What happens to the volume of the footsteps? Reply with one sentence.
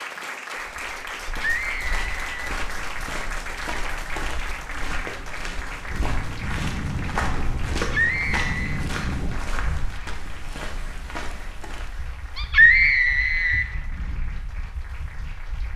The loudness of the footsteps goes up, then down.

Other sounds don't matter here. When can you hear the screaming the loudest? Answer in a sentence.
The volume of the screaming peaks at 13 seconds.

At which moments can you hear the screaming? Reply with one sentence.
The screaming can be heard from 1.4 to 2.5 s, from 7.8 to 8.8 s and from 12.3 to 13.7 s.